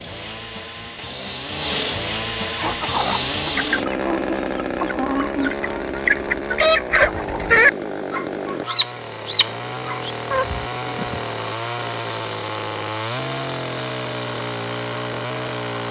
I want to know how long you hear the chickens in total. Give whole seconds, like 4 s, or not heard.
9 s.